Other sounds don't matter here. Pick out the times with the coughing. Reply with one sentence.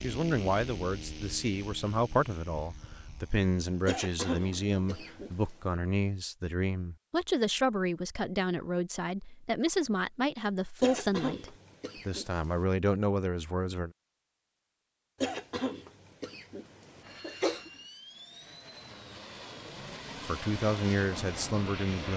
The coughing can be heard from 3.9 to 5.5 s, from 10.8 to 12.7 s and from 15.2 to 17.7 s.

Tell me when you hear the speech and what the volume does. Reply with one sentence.
The speech can be heard from 0.0 to 13.9 s, at a steady volume; and briefly from 20.2 to 22.1 s.